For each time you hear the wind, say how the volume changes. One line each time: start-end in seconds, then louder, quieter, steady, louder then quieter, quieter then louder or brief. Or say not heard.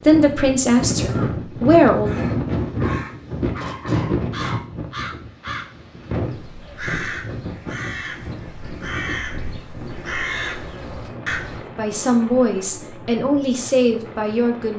0.0-14.7 quieter.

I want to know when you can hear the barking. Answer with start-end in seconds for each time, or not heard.
2.6-4.7.